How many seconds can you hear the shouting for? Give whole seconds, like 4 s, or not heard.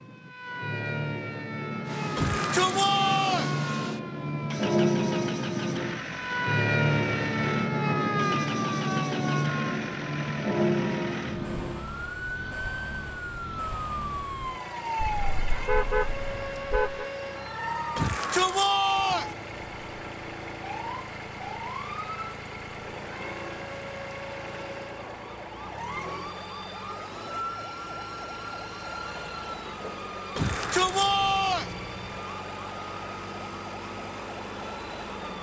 4 s.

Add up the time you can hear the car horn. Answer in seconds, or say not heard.
2 s.